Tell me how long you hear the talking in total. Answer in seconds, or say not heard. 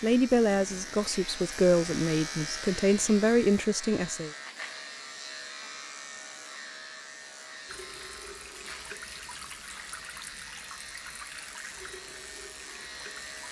4 s.